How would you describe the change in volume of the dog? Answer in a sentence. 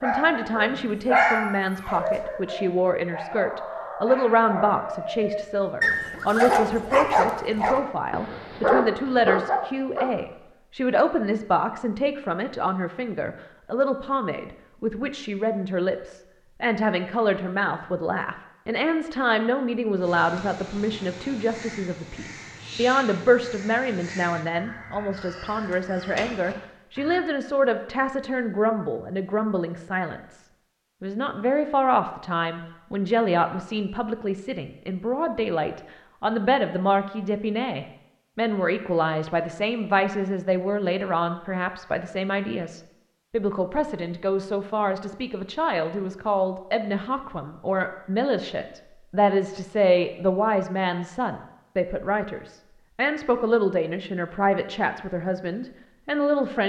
The loudness of the dog goes down, then up.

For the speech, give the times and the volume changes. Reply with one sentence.
The speech can be heard from 0.0 to 56.6 s, at a steady volume.